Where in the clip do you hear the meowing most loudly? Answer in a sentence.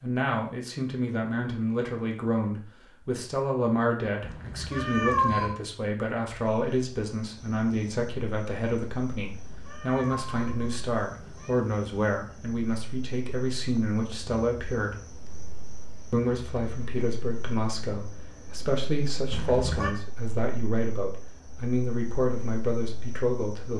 The loudest moment of the meowing is at 5 seconds.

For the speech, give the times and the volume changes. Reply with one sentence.
You can hear the speech from 0.0 to 14.9 s, at a steady volume; and from 16.1 to 23.7 s, at a steady volume.